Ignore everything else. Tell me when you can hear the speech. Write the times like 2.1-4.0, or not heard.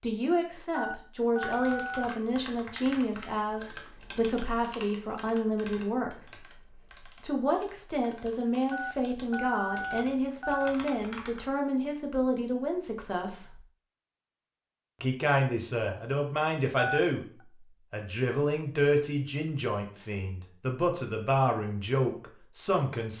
0.0-13.6, 15.0-23.1.